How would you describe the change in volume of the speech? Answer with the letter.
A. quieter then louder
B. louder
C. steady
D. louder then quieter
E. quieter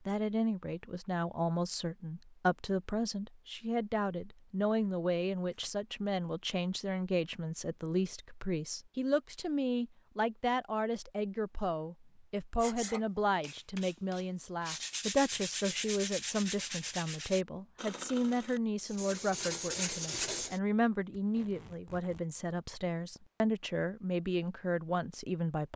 C.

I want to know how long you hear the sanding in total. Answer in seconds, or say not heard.
8 s.